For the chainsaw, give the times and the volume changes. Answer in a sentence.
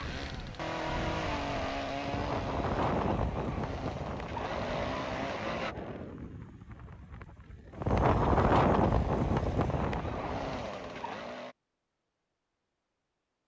You can hear the chainsaw from 0.0 to 5.8 s, getting quieter then louder; and briefly from 8.8 to 11.6 s.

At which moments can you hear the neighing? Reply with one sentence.
You can't hear the neighing here.